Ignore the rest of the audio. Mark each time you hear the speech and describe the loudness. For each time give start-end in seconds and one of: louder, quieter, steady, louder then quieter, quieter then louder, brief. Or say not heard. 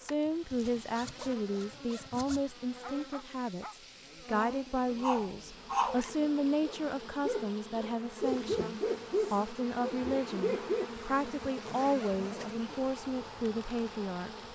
0.0-14.3 steady.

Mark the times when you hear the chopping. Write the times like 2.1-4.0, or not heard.
not heard.